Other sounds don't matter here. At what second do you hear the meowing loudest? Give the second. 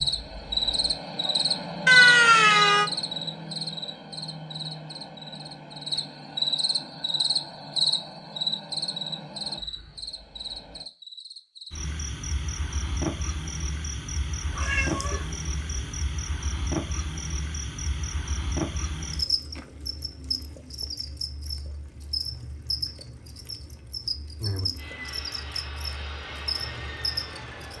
2 s.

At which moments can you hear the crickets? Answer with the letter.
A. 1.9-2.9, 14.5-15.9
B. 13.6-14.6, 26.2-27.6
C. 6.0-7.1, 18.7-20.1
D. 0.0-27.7
D.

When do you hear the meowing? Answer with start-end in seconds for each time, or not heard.
1.9-2.9, 14.5-15.9.